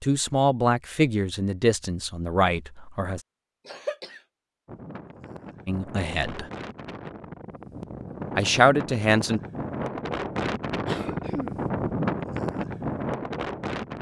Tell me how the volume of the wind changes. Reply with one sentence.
The volume of the wind goes up.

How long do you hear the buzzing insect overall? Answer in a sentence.
You can't hear the buzzing insect here.